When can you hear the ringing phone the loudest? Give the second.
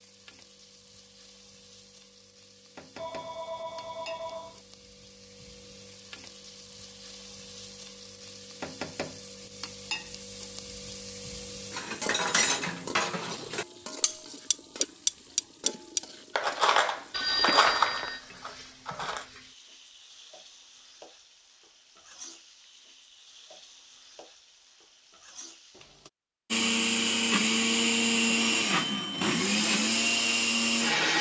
18 s.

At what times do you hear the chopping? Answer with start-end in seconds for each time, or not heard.
not heard.